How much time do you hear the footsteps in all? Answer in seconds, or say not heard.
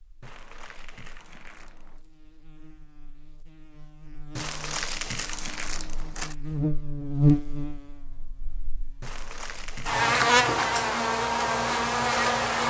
not heard.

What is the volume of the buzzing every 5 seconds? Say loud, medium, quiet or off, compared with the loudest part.
quiet, medium, loud.